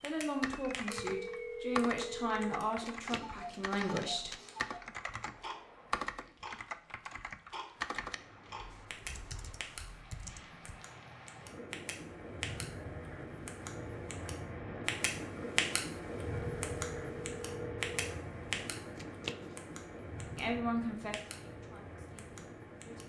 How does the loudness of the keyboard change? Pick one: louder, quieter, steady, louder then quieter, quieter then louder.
quieter.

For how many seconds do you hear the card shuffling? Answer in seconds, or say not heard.
2 s.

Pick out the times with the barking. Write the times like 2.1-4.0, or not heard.
not heard.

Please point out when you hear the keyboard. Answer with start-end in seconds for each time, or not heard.
0.4-10.6.